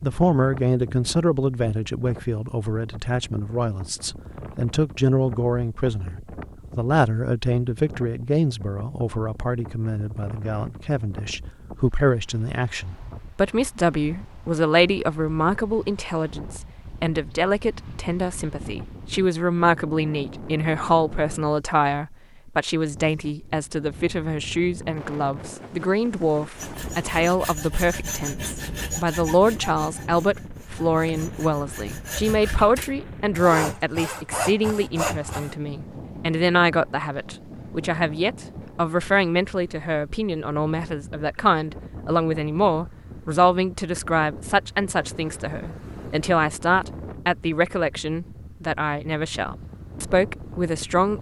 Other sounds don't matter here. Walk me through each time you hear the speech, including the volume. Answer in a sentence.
You can hear the speech from 0.0 to 51.1 s, at a steady volume.